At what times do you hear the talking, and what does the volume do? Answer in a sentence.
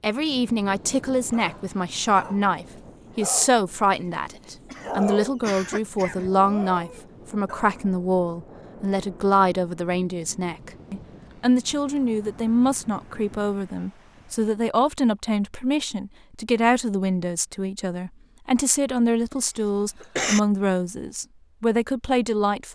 The talking can be heard from 0.0 to 22.6 s, at a steady volume.